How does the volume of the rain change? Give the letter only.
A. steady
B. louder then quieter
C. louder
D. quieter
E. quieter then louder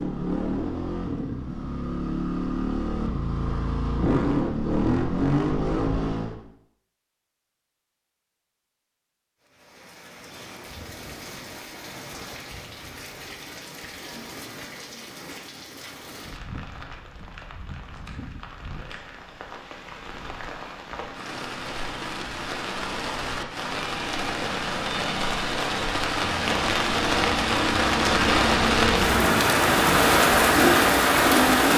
C.